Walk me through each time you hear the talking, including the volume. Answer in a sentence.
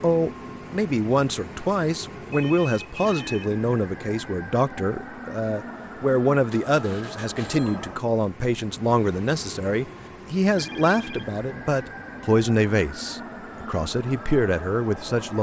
The talking can be heard from 0.0 to 15.3 s, at a steady volume.